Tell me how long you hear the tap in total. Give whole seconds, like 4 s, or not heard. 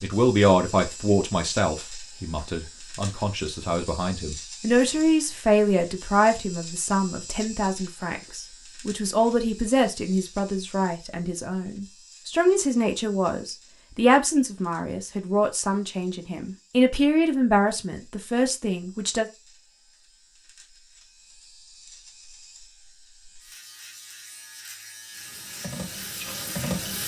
2 s.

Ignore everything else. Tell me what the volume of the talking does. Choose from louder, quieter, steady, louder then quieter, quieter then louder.
steady.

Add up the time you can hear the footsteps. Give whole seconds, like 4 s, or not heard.
not heard.